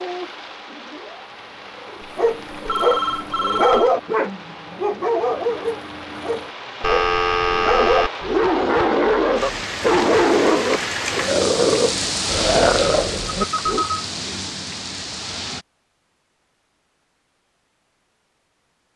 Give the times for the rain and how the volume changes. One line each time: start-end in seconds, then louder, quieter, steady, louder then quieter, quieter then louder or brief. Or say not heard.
0.0-15.7 louder.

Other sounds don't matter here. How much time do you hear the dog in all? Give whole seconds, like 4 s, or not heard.
12 s.